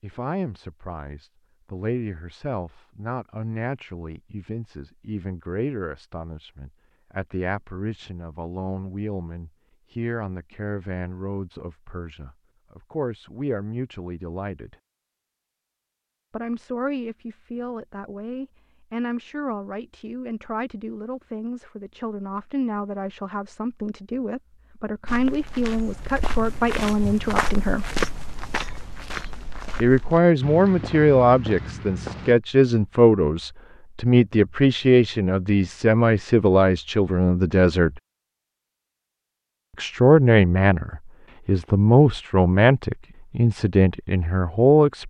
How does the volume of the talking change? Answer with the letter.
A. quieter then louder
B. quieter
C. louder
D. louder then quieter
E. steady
C.